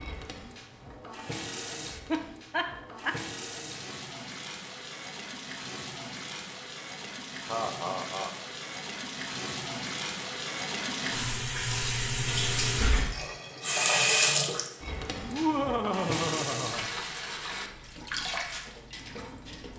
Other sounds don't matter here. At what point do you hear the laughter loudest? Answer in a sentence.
The volume of the laughter peaks at 16 seconds.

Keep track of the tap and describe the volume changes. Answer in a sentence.
The volume of the tap goes up, then down.